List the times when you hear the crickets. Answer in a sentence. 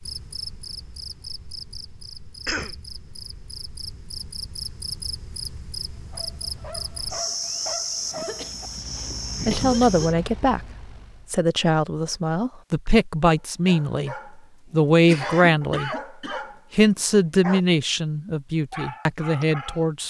The crickets can be heard from 0.0 to 10.2 s.